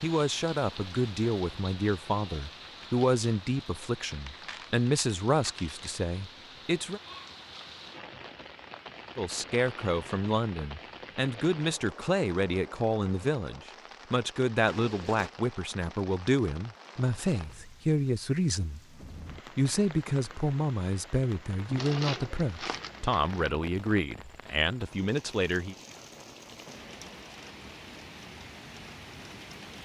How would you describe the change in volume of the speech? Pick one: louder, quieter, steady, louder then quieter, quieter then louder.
steady.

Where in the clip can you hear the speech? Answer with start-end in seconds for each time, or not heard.
0.0-7.0, 9.2-18.8, 19.6-25.8.